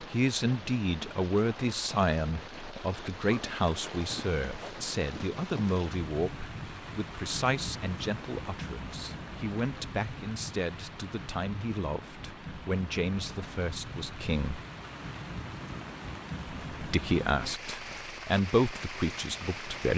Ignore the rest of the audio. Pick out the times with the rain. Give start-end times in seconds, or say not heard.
0.0-19.9.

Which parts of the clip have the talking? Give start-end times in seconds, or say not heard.
0.0-14.6, 16.7-19.9.